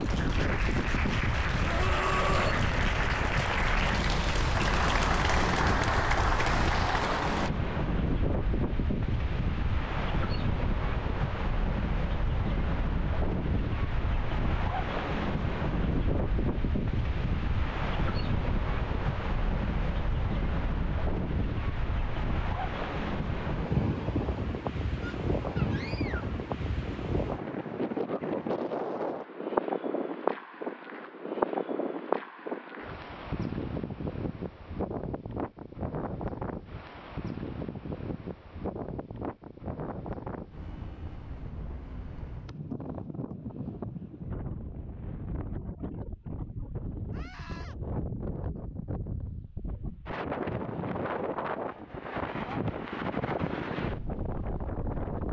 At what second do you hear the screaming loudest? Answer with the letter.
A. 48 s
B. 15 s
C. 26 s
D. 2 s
D.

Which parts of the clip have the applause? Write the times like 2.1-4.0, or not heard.
0.0-7.5.